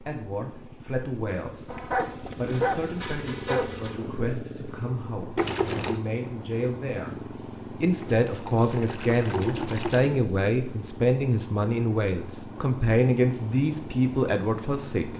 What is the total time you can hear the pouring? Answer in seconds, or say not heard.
3 s.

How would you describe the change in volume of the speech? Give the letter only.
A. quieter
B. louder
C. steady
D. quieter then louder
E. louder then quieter
B.